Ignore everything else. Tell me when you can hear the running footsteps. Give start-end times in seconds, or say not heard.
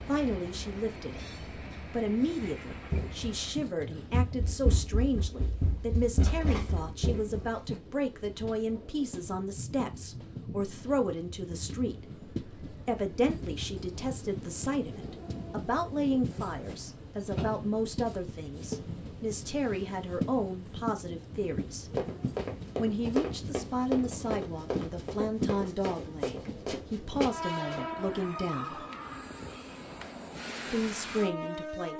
2.7-7.8, 21.9-27.9.